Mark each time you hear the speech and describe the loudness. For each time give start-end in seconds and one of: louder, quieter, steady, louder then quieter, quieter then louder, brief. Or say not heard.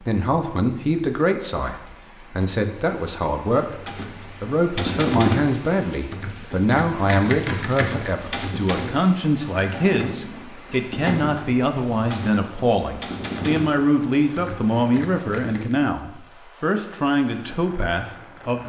0.1-18.6 steady.